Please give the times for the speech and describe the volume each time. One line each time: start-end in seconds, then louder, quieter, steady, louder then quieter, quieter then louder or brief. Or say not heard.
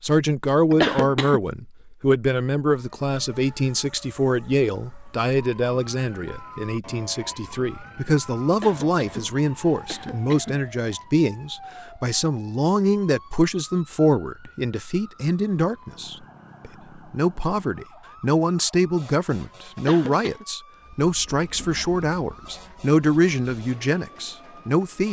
0.0-25.0 steady.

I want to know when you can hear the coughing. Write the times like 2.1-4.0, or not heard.
0.7-1.4, 8.5-10.6, 19.8-20.4.